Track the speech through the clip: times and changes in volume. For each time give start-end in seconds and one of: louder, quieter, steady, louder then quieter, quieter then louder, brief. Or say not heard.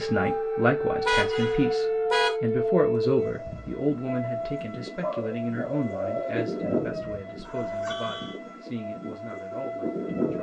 0.0-10.3 quieter.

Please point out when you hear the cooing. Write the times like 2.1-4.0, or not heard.
5.0-6.8.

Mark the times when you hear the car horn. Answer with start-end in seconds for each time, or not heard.
1.1-2.4, 7.3-8.4.